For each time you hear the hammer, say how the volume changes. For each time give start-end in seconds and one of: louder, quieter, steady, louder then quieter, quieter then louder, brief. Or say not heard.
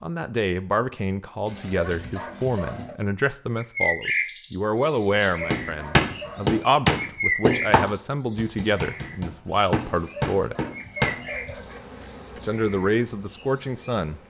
5.5-11.2 quieter then louder.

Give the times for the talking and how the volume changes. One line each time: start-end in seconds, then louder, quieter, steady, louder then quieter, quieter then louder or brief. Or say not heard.
0.0-10.6 steady
12.3-14.2 brief.